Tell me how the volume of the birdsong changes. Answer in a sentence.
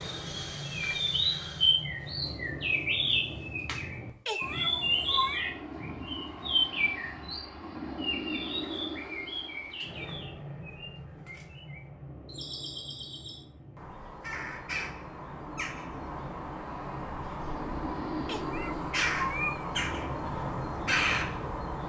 The volume of the birdsong goes down, then up.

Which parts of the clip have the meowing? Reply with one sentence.
The meowing can be heard from 4.2 to 5.5 s and from 18.2 to 19.8 s.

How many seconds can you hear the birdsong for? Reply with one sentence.
The birdsong can be heard for 22 seconds in total.